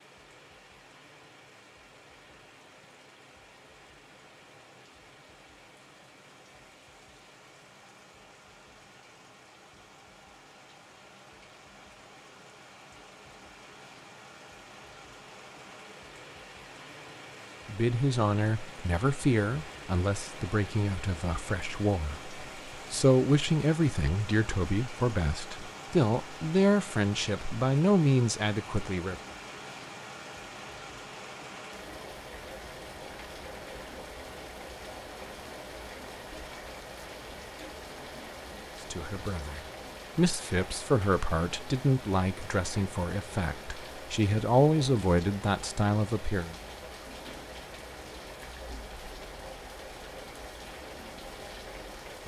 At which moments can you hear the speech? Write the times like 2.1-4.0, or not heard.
17.6-29.1, 38.9-46.5.